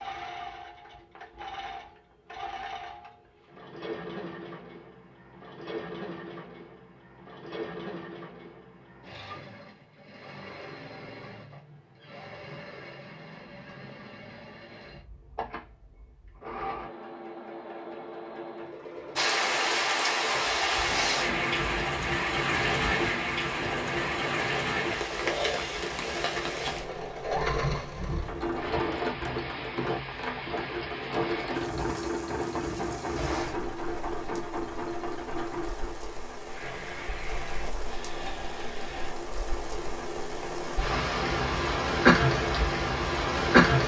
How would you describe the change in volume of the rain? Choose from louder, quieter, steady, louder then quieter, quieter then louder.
quieter then louder.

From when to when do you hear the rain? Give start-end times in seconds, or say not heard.
19.1-43.8.